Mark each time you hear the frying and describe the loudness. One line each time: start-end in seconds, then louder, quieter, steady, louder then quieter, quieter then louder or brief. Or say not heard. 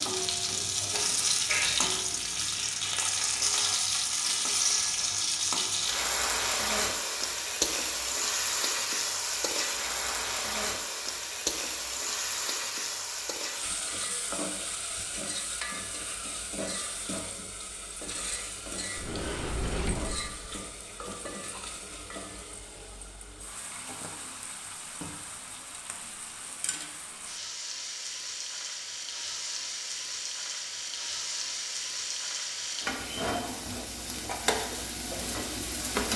0.0-36.1 quieter then louder.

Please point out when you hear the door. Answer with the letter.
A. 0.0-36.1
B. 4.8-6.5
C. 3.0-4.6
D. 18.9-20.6
D.